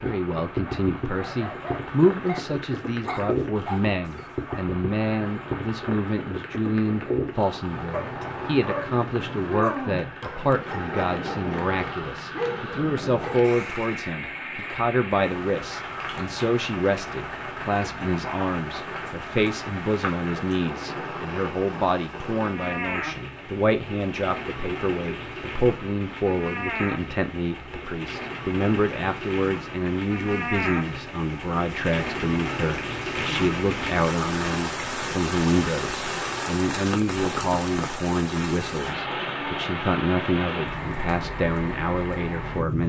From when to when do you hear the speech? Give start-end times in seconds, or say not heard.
0.0-42.8.